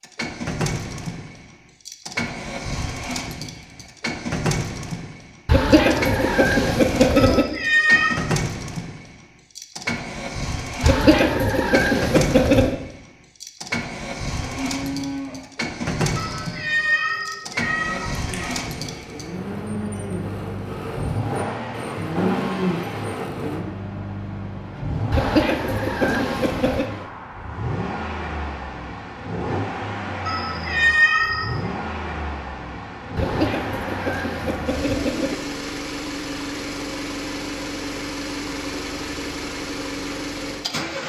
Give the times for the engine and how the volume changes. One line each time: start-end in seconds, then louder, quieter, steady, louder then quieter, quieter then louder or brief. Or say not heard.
0.0-41.0 steady.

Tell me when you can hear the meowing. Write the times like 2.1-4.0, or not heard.
7.2-8.2, 16.1-18.6, 30.2-31.6.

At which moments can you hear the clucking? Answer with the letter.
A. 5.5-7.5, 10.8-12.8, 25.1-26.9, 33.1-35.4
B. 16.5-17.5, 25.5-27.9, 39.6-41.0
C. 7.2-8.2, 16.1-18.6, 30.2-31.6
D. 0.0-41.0
A.